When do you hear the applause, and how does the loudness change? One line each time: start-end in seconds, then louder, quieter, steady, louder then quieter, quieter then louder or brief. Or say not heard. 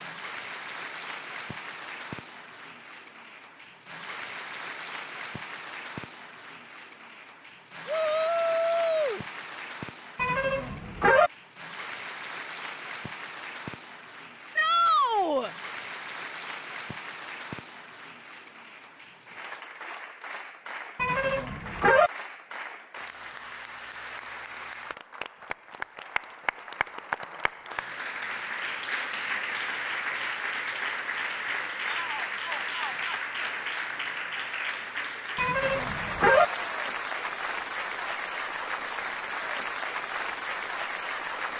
0.0-41.5 louder.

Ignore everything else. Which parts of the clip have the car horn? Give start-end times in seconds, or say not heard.
10.2-11.3, 20.9-22.1, 35.4-36.5.